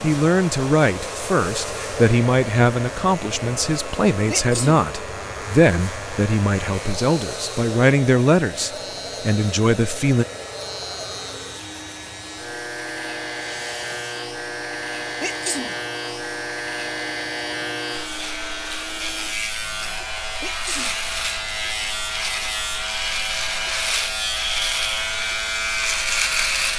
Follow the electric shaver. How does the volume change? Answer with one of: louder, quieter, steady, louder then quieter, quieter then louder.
louder.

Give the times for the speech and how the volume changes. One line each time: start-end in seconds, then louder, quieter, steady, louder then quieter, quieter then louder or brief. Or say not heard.
0.0-10.2 steady.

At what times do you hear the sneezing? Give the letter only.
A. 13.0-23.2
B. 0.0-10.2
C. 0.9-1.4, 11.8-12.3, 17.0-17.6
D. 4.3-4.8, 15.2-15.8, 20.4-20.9
D.